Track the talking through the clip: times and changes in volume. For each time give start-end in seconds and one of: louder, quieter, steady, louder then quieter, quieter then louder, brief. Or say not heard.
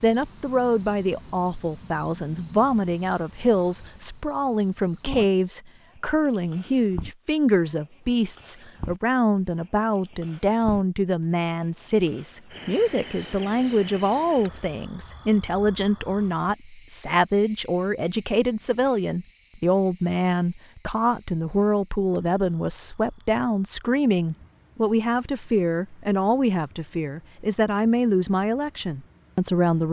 0.0-29.8 steady.